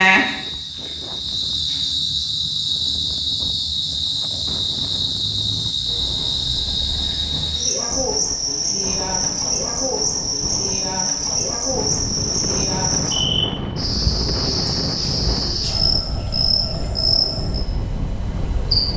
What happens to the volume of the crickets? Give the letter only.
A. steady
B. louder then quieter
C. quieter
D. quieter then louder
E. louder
A.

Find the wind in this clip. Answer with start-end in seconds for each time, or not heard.
0.2-18.9.